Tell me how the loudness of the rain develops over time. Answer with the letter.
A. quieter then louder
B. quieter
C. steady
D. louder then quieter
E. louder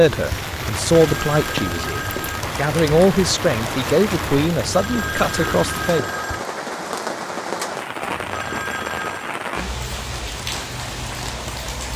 C.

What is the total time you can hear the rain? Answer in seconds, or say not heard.
12 s.